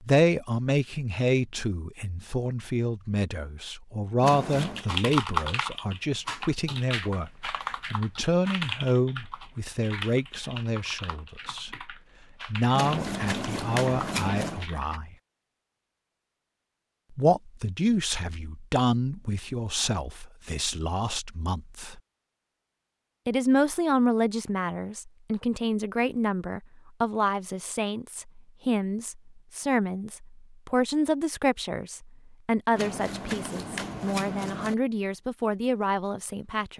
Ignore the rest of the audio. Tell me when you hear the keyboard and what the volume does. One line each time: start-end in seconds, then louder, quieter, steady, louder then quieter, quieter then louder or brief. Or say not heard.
4.5-15.0 quieter.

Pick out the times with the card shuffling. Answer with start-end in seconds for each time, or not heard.
4.2-4.8, 12.7-14.7, 32.8-34.8.